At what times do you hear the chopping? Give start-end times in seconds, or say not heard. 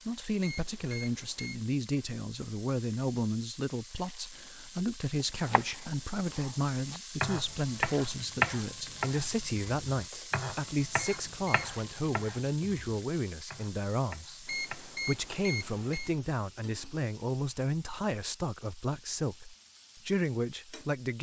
5.2-15.6.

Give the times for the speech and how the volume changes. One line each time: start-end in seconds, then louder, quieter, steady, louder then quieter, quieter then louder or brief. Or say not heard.
0.1-21.1 steady.